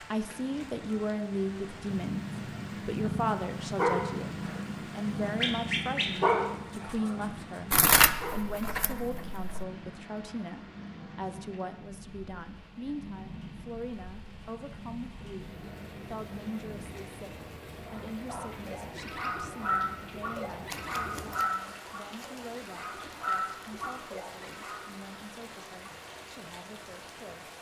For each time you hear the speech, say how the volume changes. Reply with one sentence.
You can hear the speech from 0.1 to 27.5 s, getting quieter.